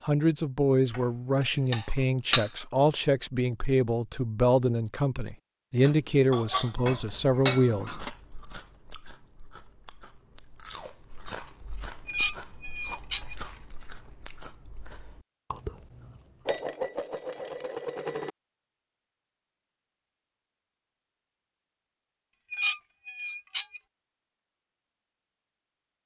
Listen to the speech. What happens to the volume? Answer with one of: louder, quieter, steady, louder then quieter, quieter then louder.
steady.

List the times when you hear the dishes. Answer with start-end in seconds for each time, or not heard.
0.9-2.6, 5.8-8.1, 11.9-13.3, 16.4-18.3, 22.4-23.8.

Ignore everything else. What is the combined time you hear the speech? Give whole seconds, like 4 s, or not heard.
8 s.